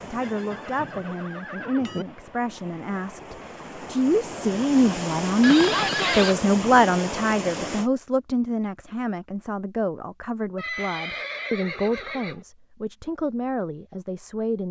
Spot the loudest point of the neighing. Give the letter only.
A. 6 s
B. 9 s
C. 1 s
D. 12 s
A.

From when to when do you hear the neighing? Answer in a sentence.
You can hear the neighing from 0.2 to 2.0 s, from 5.4 to 6.3 s and from 10.6 to 12.4 s.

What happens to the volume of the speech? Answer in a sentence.
The loudness of the speech goes up, then down.